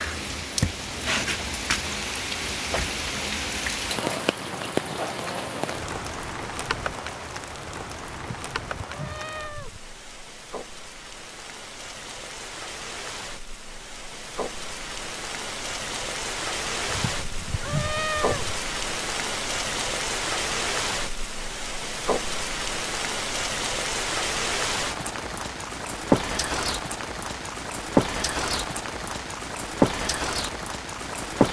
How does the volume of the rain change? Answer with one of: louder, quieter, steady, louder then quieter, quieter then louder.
quieter then louder.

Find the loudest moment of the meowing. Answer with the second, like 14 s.
18 s.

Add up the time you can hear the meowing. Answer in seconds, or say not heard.
3 s.